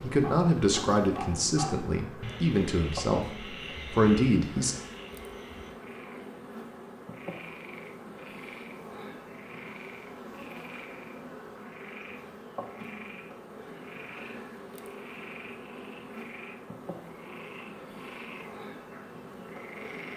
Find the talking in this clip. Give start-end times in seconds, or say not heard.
0.0-4.8.